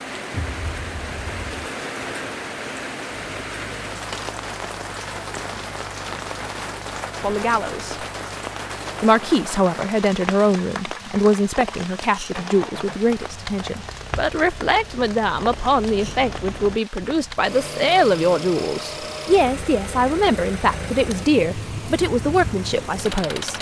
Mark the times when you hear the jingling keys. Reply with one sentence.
The jingling keys can be heard from 0.3 to 1.6 s.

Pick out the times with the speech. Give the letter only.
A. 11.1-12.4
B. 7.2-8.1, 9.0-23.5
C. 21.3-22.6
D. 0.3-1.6
B.